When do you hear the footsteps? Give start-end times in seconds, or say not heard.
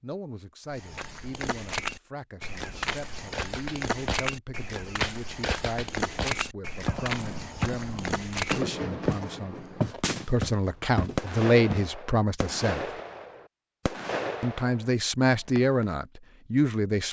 0.7-11.8.